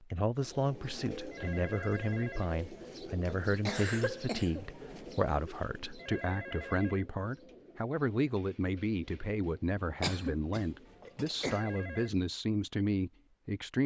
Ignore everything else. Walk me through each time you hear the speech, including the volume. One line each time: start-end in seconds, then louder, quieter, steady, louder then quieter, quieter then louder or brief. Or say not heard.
0.0-13.8 steady.